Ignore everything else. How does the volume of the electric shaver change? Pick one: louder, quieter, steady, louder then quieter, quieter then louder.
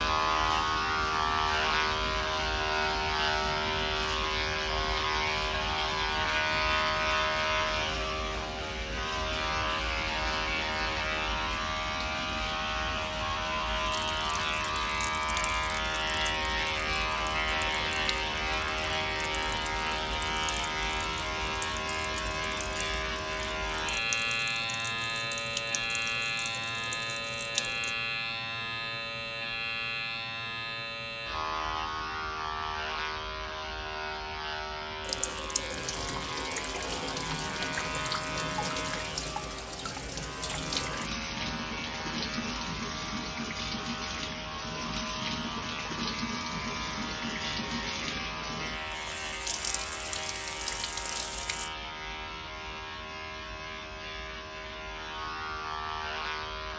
quieter.